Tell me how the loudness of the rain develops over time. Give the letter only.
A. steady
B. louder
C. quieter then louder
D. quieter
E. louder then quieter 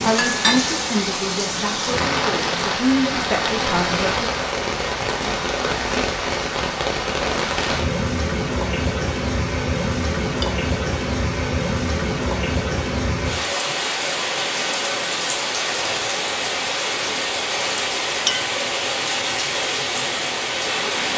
A.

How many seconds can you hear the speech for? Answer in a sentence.
You can hear the speech for 4 seconds altogether.